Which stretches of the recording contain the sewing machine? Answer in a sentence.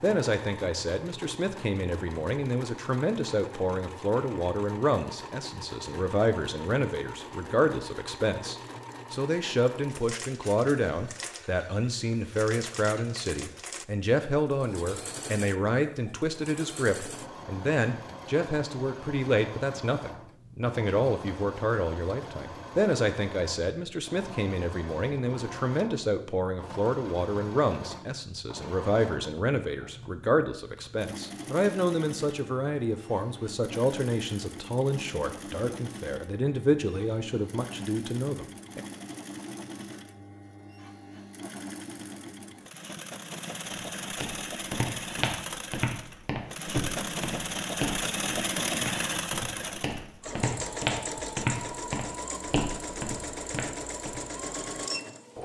The sewing machine can be heard from 0.0 to 55.4 s.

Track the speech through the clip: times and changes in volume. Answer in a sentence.
You can hear the speech from 0.0 to 38.8 s, at a steady volume.